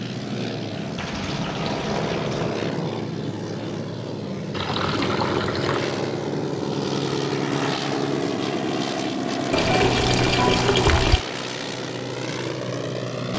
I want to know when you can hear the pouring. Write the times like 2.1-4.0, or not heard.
0.9-2.5, 4.5-6.0, 9.5-11.2.